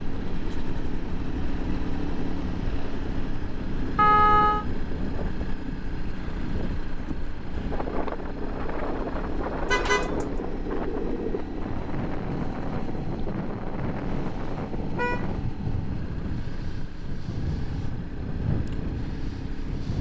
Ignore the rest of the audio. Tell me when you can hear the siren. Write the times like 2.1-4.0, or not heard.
not heard.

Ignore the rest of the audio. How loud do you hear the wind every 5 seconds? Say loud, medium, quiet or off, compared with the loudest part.
medium, loud, loud, loud.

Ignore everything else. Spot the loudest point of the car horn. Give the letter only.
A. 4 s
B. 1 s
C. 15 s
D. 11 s
A.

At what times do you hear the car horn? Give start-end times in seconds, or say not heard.
4.0-4.7, 9.7-10.3, 14.1-15.3.